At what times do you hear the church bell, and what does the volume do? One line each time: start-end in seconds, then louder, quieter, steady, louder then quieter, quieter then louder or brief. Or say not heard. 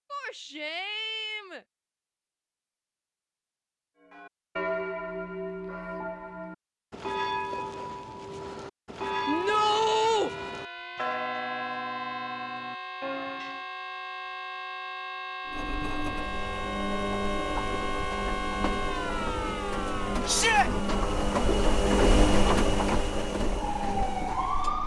4.1-13.7 steady.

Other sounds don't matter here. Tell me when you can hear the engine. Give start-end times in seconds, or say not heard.
15.4-24.8.